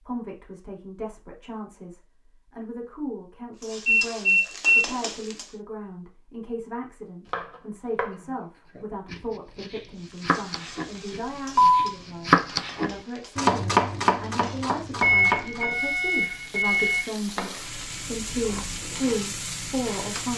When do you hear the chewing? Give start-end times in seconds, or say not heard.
not heard.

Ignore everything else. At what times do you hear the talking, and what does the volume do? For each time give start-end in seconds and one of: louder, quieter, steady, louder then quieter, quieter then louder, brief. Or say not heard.
0.0-20.3 louder.